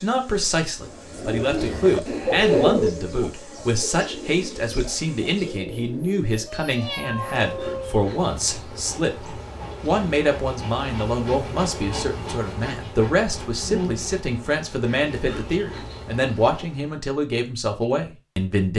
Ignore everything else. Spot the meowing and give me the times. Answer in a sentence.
You can hear the meowing from 6.5 to 8.0 s.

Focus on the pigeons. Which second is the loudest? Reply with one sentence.
The volume of the pigeons peaks at 3 seconds.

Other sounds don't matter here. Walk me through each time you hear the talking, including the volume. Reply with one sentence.
You can hear the talking from 0.0 to 18.7 s, at a steady volume.